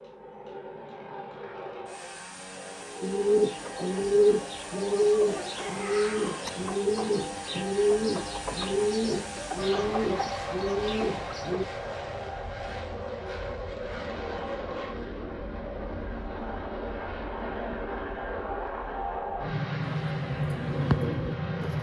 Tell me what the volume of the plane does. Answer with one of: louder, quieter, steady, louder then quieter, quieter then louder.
louder.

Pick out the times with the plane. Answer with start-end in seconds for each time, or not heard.
0.0-21.7.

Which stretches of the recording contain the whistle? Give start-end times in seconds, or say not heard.
not heard.